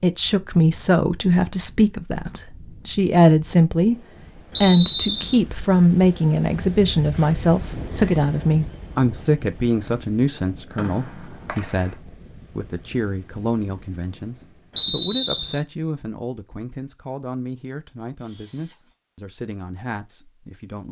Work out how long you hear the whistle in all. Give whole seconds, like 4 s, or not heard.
3 s.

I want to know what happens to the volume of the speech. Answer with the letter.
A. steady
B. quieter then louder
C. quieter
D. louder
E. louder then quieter
C.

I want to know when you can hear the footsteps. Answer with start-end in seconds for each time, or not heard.
not heard.